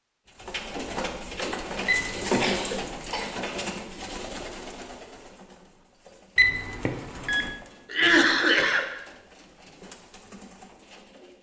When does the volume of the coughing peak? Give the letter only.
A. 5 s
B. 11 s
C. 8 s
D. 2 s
C.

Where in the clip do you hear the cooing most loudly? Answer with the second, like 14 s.
2 s.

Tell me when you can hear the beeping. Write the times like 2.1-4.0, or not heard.
1.9-2.5, 6.3-7.5.